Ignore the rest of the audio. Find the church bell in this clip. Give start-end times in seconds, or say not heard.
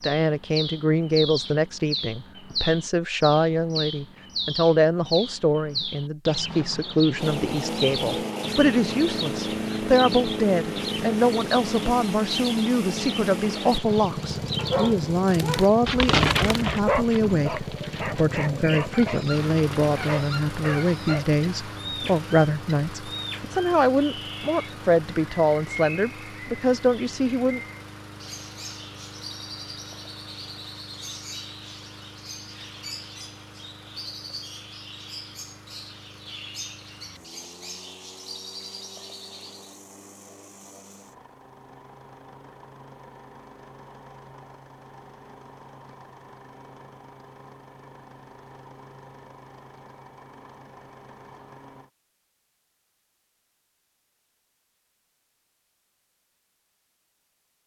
not heard.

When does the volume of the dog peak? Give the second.
16 s.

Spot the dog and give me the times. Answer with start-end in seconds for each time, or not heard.
14.6-21.4.